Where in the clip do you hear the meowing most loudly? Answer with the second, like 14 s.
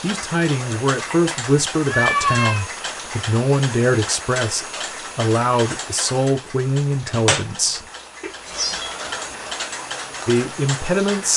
2 s.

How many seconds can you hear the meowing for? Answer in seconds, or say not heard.
2 s.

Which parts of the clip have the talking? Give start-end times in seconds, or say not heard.
0.0-7.9, 10.2-11.3.